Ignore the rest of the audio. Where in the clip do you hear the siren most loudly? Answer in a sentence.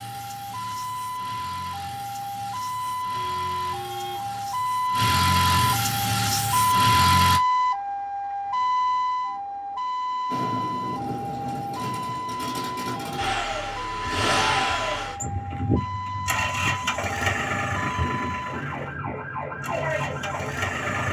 The volume of the siren peaks at 7 seconds.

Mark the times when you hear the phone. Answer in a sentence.
The phone can't be heard in this clip.